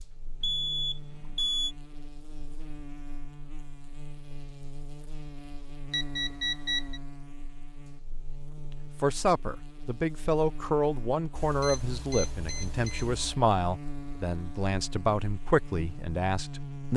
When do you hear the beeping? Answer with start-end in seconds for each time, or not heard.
0.4-1.8, 5.9-7.0, 11.3-13.3.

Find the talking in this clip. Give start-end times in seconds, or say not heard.
9.0-16.9.